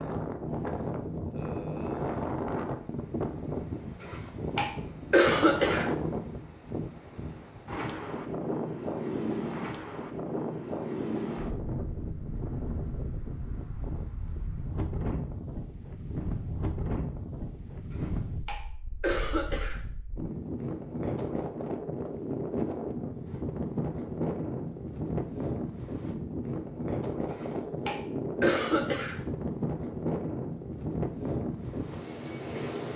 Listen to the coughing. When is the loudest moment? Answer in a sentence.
The loudest moment of the coughing is at 5 seconds.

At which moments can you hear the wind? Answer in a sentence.
The wind can be heard from 0.0 to 32.9 s.